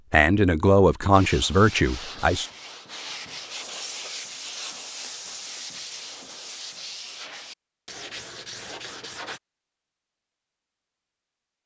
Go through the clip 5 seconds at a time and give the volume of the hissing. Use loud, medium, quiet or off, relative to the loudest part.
loud, loud, off.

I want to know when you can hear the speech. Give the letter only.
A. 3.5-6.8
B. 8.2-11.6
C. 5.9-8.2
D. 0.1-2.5
D.